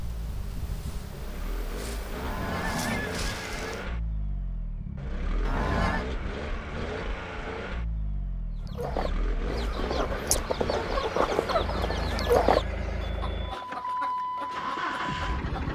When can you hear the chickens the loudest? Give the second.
12 s.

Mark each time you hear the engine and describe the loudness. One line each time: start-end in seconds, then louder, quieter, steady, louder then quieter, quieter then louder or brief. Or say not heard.
0.0-15.6 louder.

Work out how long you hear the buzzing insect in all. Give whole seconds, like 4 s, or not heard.
4 s.